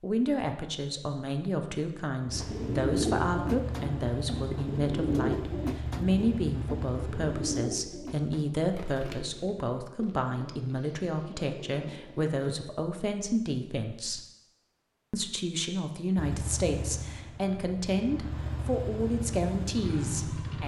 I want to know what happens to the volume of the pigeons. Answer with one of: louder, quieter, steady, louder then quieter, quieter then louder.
quieter.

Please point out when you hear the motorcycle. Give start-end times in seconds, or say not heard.
2.2-7.5, 16.1-20.6.